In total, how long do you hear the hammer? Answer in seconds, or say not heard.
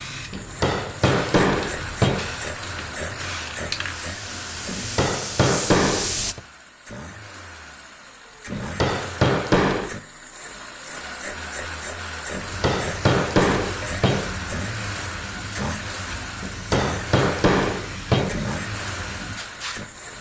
9 s.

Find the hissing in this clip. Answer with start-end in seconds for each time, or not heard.
0.0-6.3, 12.5-20.1.